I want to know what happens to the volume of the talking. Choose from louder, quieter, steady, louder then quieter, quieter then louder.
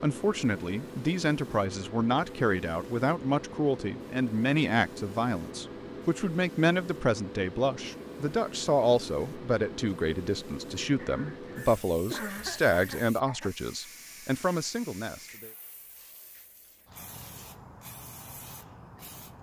steady.